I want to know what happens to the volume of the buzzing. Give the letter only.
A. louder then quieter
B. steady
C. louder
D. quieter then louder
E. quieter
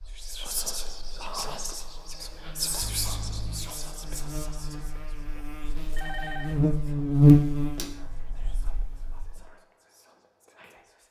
A.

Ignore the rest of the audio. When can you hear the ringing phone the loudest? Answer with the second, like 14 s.
6 s.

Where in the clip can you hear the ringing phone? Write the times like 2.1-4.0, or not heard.
2.8-3.8, 6.0-6.6.